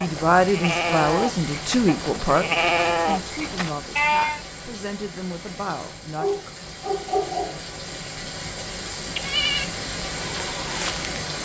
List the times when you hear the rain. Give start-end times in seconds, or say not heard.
0.0-11.4.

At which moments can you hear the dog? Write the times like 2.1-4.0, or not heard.
5.7-7.6.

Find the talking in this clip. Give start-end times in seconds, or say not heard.
0.0-6.5.